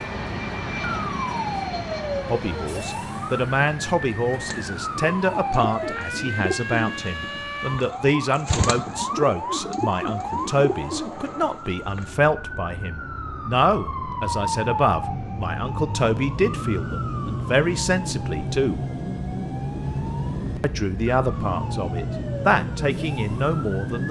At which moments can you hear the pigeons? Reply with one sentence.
The pigeons can be heard from 4.5 to 12.1 s.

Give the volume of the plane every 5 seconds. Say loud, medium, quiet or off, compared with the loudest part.
loud, quiet, medium, loud, loud.